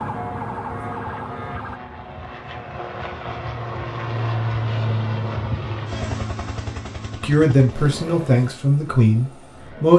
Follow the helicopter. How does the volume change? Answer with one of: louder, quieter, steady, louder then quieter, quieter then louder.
louder then quieter.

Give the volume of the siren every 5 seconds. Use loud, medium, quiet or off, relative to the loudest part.
loud, off.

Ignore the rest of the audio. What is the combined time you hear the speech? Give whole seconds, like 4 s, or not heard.
3 s.